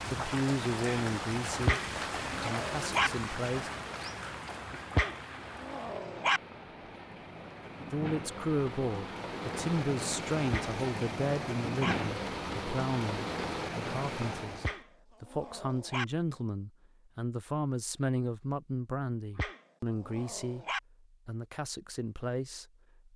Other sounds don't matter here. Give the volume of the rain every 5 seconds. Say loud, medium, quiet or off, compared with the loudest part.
loud, medium, loud, off, off.